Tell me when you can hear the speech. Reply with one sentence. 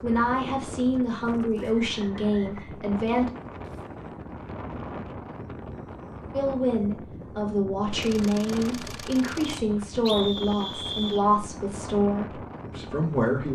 The speech can be heard from 0.0 to 3.3 s and from 6.3 to 13.5 s.